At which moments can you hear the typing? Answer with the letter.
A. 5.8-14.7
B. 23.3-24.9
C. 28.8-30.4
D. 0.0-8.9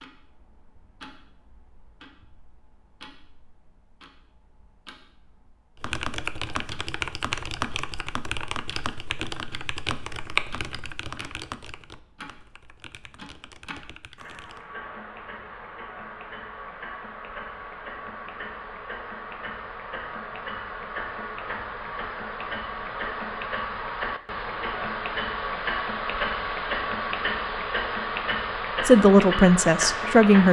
A.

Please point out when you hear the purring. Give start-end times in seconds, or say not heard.
not heard.